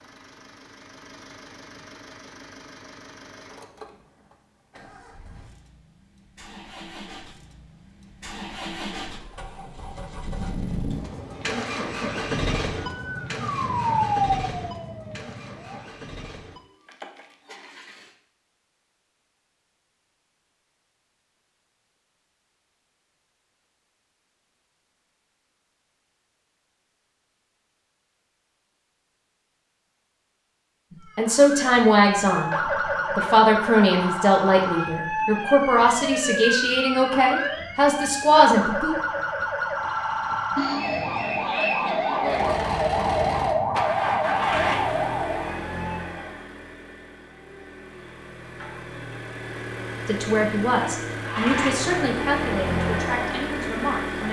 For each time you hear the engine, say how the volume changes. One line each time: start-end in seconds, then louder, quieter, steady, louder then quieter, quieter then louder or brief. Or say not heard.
0.0-18.1 louder then quieter
42.2-54.2 quieter then louder.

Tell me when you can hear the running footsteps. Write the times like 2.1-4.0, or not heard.
not heard.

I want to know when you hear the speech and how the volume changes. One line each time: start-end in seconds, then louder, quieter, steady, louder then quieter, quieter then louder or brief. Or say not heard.
30.9-39.0 steady
50.0-54.2 quieter.